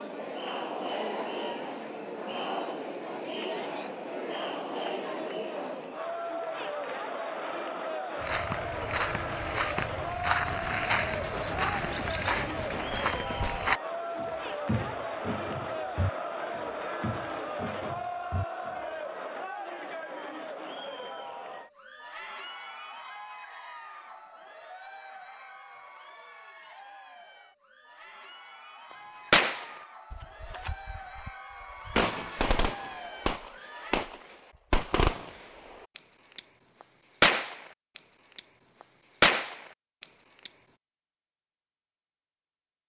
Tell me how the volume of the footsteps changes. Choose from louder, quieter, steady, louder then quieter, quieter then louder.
quieter.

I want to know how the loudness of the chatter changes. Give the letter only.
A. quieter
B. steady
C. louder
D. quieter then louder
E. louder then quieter
A.